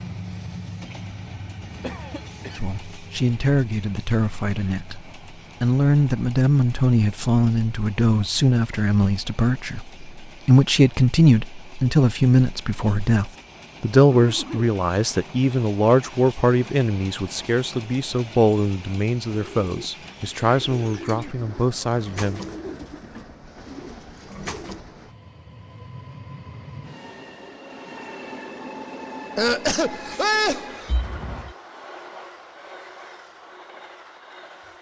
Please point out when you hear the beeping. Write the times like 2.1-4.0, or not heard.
30.9-31.6.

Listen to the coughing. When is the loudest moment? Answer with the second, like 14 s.
30 s.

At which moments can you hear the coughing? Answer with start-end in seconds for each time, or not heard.
1.8-2.6, 14.1-14.8, 29.4-30.9.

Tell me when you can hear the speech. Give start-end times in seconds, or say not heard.
2.5-22.4.